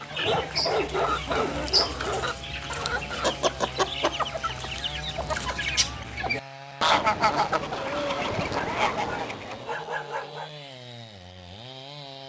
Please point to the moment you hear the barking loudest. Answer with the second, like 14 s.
1 s.